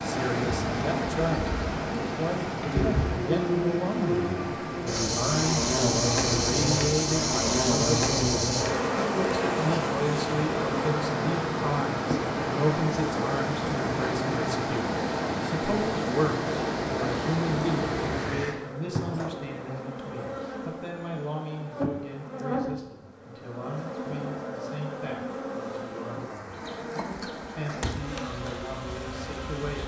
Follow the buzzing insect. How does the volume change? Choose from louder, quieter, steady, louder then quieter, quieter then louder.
quieter.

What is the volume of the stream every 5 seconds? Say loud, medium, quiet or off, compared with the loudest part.
loud, medium, loud, loud, off, off.